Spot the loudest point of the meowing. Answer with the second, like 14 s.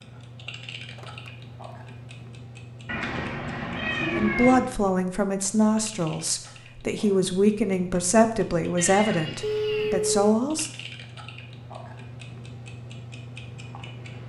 4 s.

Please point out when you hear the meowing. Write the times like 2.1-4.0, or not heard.
2.9-4.6, 8.8-10.0.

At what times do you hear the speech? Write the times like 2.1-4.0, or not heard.
4.2-10.7.